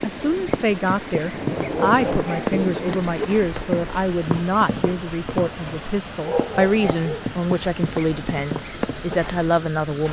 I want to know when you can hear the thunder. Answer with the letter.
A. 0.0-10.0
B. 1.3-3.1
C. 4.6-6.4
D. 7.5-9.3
B.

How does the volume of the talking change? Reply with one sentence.
The loudness of the talking stays about the same.